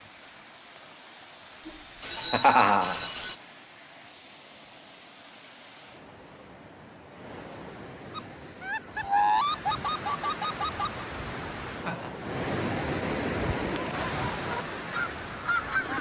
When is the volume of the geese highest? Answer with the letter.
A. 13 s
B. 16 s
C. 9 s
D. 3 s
C.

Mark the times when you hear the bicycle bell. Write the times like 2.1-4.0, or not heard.
1.6-3.4, 9.3-9.8.